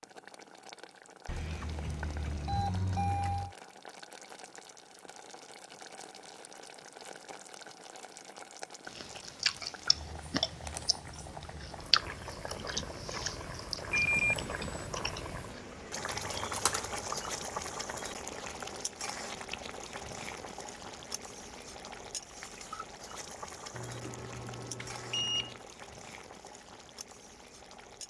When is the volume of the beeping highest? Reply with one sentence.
The volume of the beeping peaks at 14 seconds.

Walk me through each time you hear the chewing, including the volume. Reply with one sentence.
The chewing can be heard from 8.9 to 17.0 s, getting quieter.